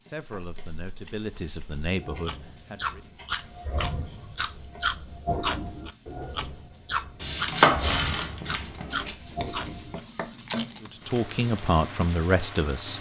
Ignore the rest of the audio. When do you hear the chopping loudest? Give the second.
8 s.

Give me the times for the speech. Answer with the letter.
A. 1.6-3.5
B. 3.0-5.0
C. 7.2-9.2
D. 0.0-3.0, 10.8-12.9
D.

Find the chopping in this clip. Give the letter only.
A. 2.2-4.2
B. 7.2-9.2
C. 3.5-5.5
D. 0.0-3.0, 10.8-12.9
B.